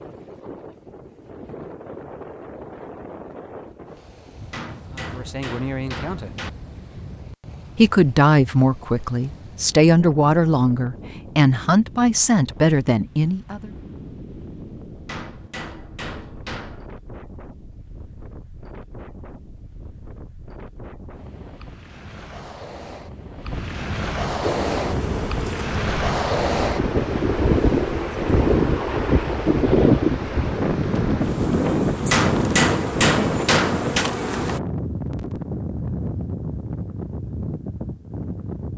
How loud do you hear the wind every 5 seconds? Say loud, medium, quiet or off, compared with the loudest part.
quiet, quiet, quiet, quiet, medium, loud, loud, medium.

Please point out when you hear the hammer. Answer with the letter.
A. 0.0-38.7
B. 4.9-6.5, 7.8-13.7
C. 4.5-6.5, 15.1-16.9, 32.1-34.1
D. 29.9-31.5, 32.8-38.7
C.